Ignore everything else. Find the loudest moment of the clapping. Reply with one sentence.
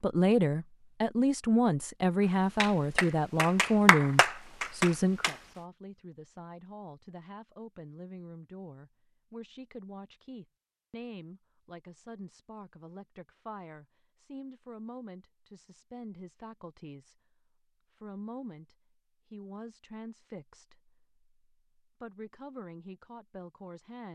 The volume of the clapping peaks at 4 seconds.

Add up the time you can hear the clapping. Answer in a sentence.
You can hear the clapping for 3 seconds altogether.